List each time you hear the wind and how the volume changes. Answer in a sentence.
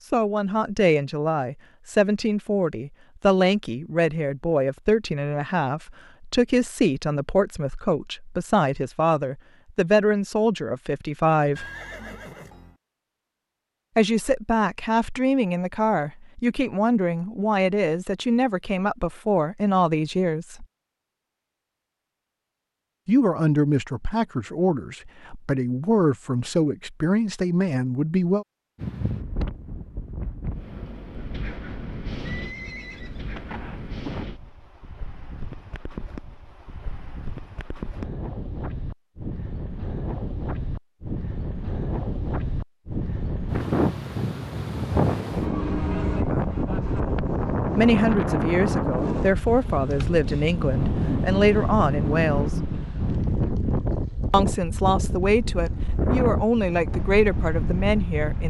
The wind can be heard from 28.8 to 58.4 s, getting louder.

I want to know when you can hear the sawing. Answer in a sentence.
The sawing can't be heard in this clip.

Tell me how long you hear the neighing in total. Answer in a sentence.
The neighing can be heard for 3 seconds in total.